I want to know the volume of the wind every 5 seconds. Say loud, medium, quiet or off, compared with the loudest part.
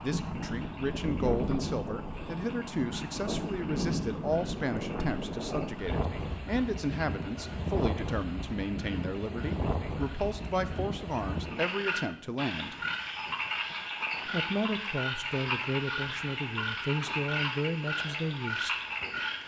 loud, loud, medium, quiet.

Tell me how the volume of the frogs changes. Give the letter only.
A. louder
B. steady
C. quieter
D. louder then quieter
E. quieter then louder
A.